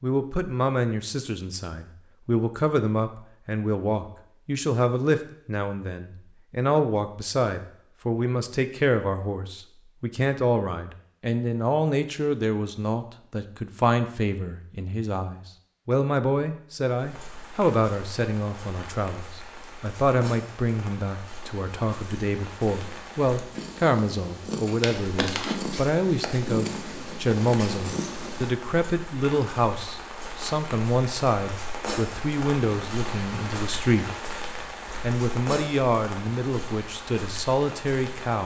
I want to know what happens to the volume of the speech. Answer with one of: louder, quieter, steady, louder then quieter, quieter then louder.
steady.